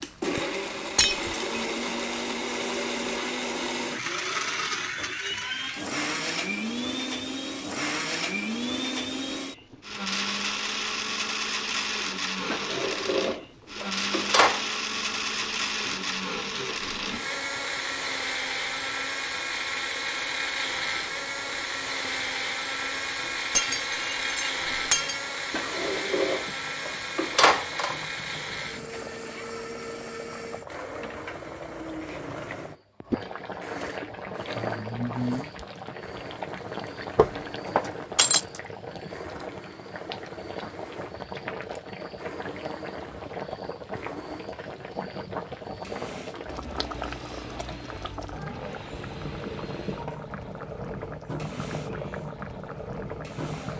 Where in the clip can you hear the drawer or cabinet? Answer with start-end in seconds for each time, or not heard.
12.5-14.8, 25.5-28.1, 37.1-38.0.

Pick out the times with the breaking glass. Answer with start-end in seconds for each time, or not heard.
0.9-1.6, 23.5-25.2, 38.1-38.6.